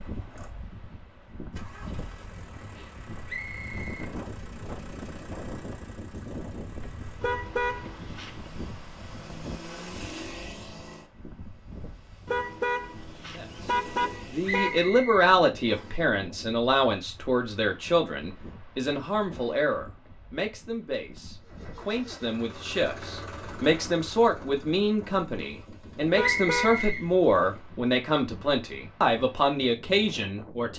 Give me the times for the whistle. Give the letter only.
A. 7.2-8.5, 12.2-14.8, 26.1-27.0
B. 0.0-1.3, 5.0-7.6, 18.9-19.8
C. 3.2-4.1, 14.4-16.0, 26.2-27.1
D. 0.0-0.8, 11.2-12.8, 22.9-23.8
C.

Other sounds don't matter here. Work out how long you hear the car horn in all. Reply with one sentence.
You can hear the car horn for 5 seconds altogether.